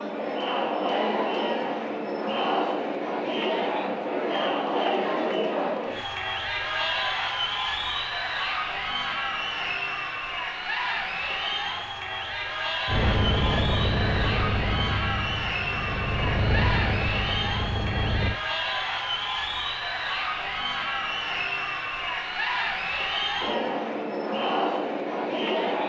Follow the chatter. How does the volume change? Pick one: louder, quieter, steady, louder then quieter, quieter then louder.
steady.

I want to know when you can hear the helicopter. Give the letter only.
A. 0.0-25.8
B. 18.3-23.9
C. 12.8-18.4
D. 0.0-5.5
C.